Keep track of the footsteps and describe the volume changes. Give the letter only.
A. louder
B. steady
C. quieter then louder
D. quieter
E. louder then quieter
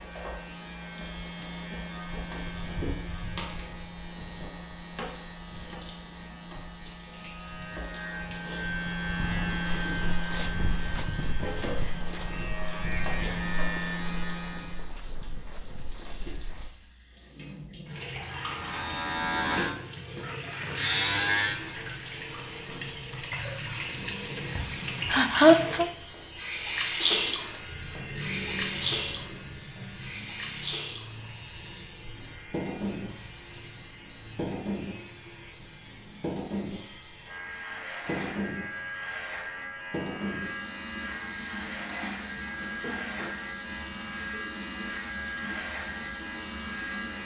D.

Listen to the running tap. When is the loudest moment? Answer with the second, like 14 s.
27 s.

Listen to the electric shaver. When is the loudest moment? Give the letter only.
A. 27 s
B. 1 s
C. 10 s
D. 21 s
D.